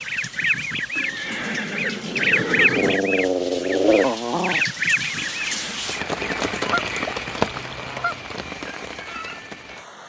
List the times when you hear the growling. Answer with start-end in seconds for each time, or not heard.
2.8-4.7.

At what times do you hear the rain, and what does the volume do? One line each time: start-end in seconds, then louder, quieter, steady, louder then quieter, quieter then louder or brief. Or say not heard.
0.0-10.0 louder then quieter.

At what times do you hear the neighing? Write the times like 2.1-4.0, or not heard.
0.9-3.0, 5.2-5.8.